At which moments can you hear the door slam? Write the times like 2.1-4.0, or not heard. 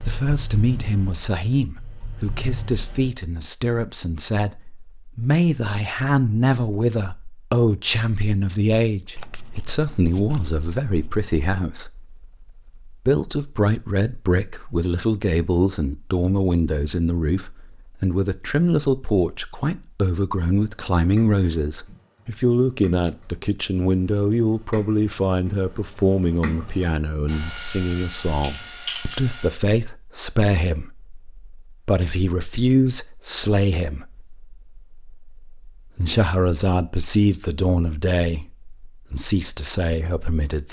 not heard.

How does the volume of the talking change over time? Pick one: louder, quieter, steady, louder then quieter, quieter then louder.
steady.